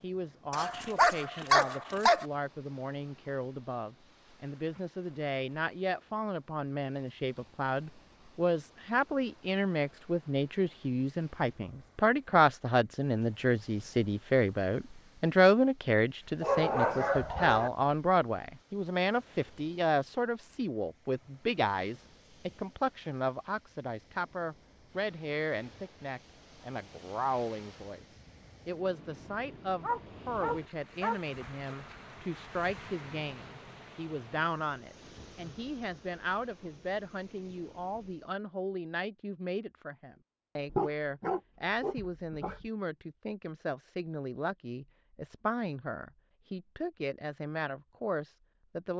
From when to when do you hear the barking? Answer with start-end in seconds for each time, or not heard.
0.5-2.2, 16.4-17.7, 29.8-31.2, 40.6-42.7.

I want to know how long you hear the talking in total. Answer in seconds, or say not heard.
49 s.